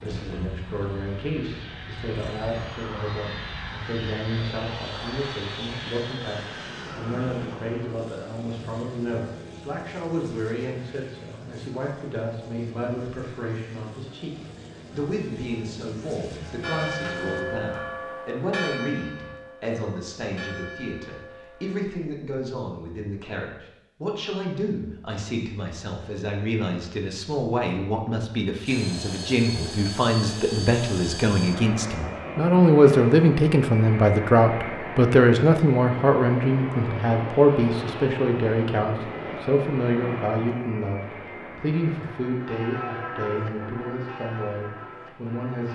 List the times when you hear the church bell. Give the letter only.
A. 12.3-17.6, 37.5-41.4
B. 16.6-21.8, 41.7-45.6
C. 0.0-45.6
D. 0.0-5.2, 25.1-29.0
B.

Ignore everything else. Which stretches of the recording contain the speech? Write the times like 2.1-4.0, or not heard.
0.0-45.6.